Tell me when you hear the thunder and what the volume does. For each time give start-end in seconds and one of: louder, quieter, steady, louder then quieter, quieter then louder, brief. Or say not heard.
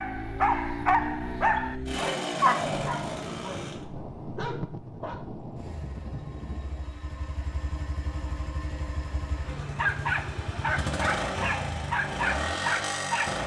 2.6-6.9 steady.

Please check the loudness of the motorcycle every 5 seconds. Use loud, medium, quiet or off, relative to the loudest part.
loud, medium, loud.